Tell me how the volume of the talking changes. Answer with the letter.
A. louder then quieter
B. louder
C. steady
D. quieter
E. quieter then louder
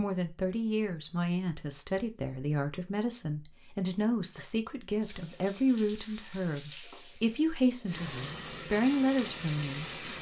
C.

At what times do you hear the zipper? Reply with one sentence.
You can't hear the zipper here.